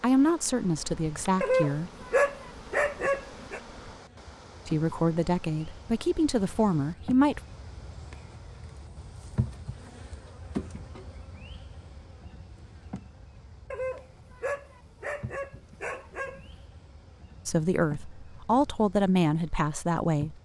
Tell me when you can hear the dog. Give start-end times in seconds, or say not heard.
1.4-3.6, 13.7-16.5.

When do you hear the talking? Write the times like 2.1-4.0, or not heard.
0.0-1.9, 4.7-7.4, 17.4-20.4.